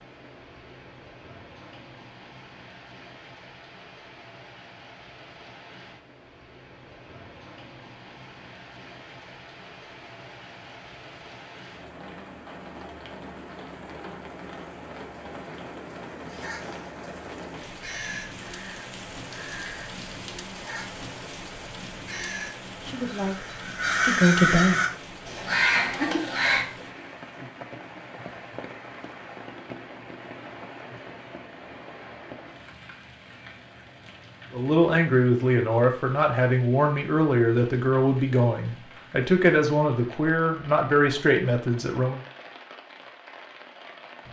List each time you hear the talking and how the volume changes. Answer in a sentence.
You can hear the talking briefly from 22.8 to 24.8 s; and from 34.5 to 42.2 s, at a steady volume.